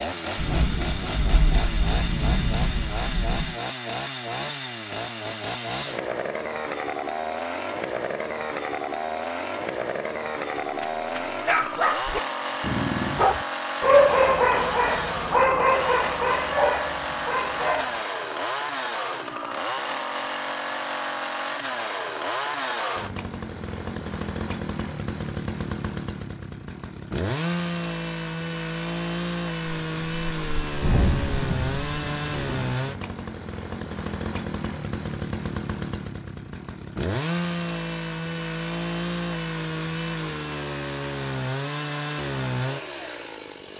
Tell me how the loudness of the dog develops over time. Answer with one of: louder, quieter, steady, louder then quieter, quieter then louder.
louder then quieter.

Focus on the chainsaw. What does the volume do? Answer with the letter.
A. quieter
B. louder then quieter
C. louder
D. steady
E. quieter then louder
D.